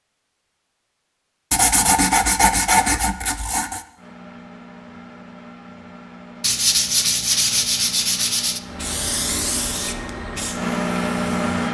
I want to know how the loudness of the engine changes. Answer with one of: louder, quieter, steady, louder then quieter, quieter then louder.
louder.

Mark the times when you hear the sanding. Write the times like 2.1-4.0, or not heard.
1.5-3.8, 6.4-8.6.